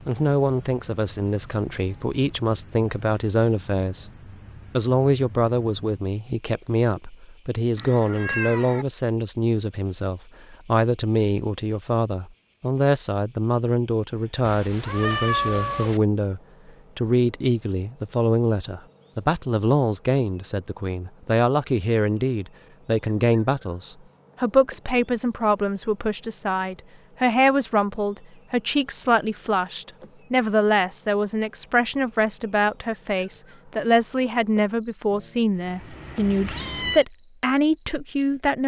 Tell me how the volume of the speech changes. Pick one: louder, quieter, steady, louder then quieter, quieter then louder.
steady.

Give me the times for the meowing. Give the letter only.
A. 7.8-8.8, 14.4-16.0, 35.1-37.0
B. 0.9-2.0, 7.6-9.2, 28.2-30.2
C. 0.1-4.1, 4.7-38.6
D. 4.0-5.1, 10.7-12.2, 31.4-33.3
A.